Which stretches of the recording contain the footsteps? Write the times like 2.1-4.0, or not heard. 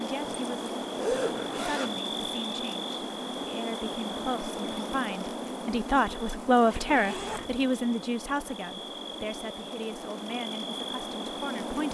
not heard.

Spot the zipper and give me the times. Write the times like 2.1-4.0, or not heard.
0.2-2.0, 6.7-7.6.